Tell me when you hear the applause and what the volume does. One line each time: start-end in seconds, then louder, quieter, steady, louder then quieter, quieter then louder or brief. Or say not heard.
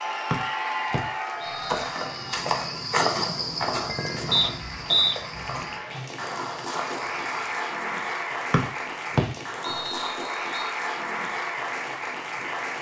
0.0-12.7 quieter then louder.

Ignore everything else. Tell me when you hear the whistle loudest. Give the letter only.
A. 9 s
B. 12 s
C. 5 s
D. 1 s
C.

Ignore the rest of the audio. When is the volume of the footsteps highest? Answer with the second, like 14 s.
3 s.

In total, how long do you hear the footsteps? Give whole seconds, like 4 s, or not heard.
6 s.